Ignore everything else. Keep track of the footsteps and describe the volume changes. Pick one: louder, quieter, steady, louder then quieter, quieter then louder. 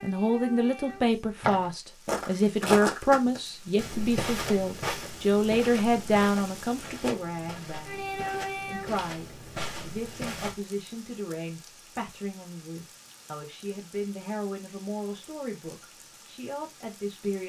quieter.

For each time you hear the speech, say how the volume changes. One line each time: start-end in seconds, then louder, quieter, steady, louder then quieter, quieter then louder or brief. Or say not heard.
0.0-17.4 quieter.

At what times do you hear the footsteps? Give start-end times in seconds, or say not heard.
1.4-10.6.